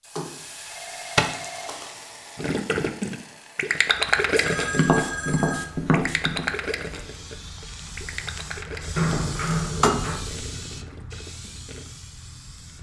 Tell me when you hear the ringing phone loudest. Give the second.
9 s.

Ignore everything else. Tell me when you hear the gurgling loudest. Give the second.
4 s.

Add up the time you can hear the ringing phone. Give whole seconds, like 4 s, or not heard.
4 s.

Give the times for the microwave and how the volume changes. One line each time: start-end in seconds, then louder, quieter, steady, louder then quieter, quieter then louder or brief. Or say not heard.
not heard.